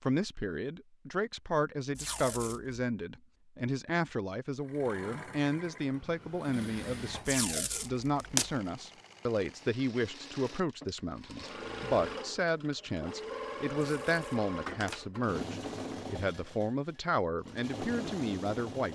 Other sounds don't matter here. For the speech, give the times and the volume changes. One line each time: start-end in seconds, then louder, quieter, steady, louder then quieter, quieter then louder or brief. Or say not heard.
0.0-18.8 steady.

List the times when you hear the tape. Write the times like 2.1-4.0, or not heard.
1.9-2.8, 7.2-8.4, 13.8-15.0.